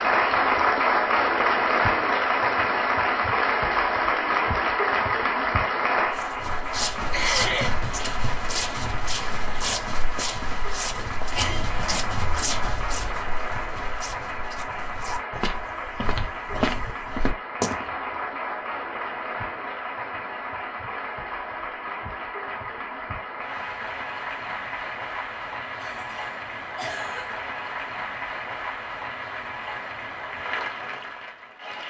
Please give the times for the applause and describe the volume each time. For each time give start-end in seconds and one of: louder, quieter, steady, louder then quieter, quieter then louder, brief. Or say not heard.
0.0-31.8 quieter.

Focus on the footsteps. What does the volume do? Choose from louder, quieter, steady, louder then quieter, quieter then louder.
quieter then louder.